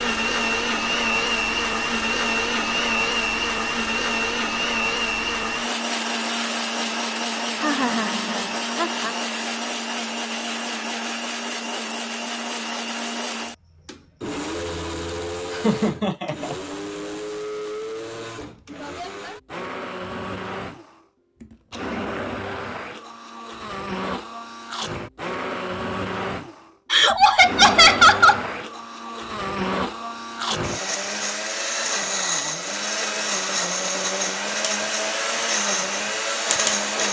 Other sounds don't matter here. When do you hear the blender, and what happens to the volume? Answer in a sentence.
You can hear the blender from 0.0 to 37.0 s, getting quieter then louder.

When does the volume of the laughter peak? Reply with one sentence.
The volume of the laughter peaks at 28 seconds.